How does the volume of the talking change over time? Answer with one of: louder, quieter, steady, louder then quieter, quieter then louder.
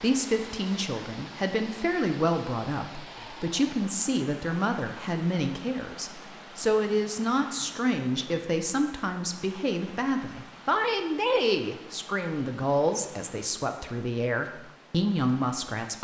steady.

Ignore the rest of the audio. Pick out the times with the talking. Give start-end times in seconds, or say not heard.
0.0-16.0.